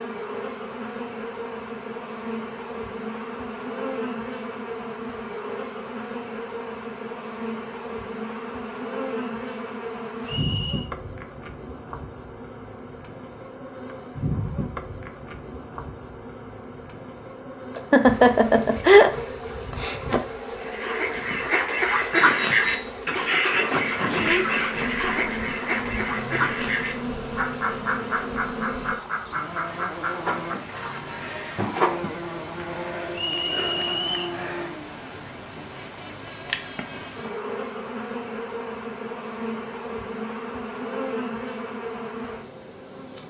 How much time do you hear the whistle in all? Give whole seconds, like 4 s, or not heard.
3 s.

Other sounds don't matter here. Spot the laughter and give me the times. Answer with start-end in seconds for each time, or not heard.
17.8-19.1.